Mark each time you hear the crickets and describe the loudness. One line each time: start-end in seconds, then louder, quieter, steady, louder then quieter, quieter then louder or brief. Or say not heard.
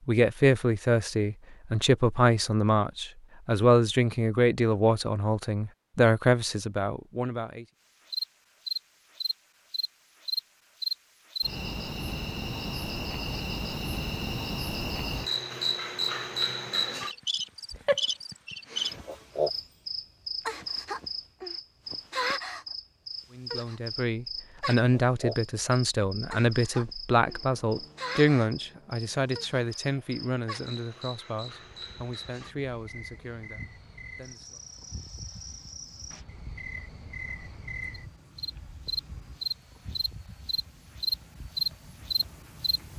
8.1-42.8 quieter then louder.